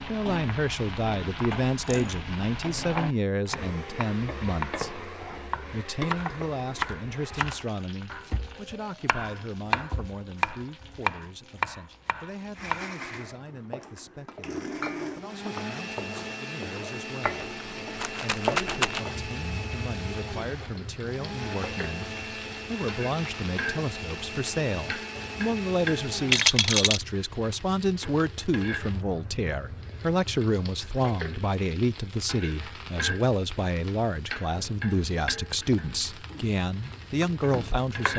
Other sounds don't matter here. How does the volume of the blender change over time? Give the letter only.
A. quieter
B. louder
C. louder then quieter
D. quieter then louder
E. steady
E.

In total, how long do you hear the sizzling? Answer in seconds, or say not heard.
38 s.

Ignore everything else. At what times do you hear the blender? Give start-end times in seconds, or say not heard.
12.6-26.4.